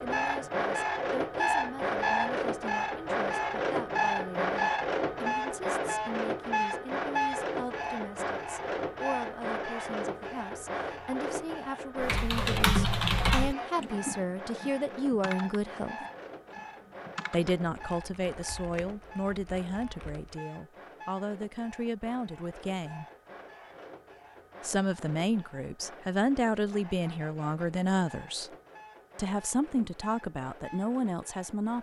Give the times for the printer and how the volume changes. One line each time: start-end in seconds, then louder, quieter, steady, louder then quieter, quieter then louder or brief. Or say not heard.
0.0-31.7 quieter.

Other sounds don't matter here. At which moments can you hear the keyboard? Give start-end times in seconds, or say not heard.
12.0-20.4.